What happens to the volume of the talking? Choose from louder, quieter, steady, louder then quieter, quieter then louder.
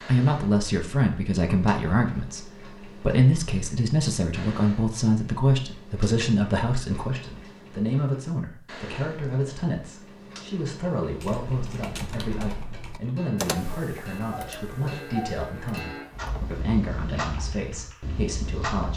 quieter.